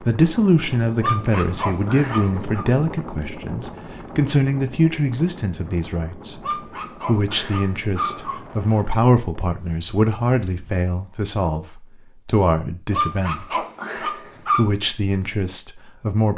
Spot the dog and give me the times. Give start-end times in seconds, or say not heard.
1.0-2.6, 6.4-8.4, 12.9-14.7.